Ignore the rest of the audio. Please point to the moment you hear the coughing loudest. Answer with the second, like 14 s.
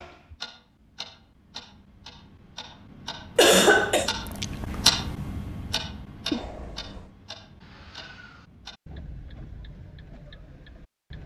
4 s.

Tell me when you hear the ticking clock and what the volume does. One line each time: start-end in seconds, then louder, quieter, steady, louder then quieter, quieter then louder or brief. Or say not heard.
0.0-11.2 louder then quieter.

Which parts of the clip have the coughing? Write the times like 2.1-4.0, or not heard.
3.4-4.1, 6.3-7.1.